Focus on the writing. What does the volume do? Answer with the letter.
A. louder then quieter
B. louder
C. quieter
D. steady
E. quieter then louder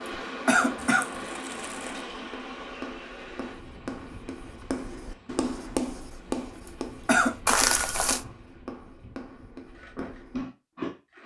A.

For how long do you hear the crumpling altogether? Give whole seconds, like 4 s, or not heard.
2 s.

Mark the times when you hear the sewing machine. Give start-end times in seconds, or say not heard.
9.7-11.2.